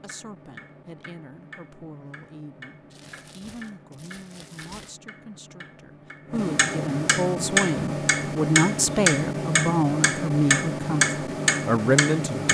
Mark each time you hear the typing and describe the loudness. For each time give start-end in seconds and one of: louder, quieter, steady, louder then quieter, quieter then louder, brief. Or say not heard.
not heard.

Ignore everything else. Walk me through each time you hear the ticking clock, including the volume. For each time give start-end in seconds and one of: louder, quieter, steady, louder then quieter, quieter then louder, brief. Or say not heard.
0.0-12.4 louder.